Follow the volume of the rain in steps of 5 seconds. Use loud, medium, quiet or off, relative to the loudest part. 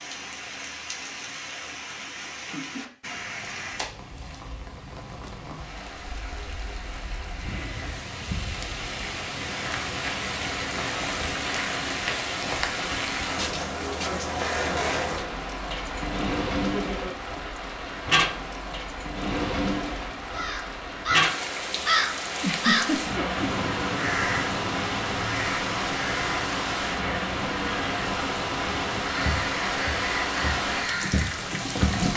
medium, medium, loud, loud, loud, loud, loud.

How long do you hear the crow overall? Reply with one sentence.
You can hear the crow for 11 seconds altogether.